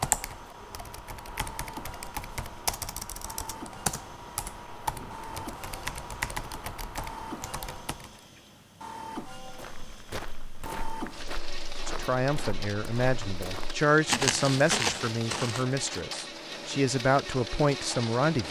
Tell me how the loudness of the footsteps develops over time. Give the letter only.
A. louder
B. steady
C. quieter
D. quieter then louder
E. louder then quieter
A.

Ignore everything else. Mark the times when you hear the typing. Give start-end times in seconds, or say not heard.
0.0-8.2.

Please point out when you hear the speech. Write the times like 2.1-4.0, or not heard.
11.8-18.4.